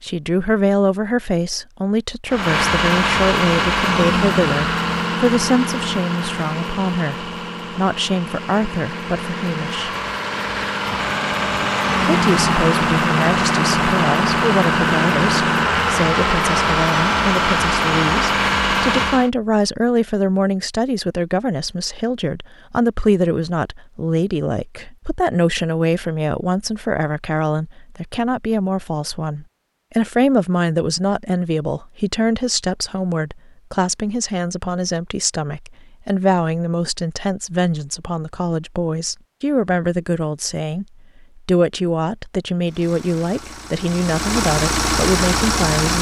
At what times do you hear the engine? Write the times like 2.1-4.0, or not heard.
2.2-19.3, 42.6-45.9.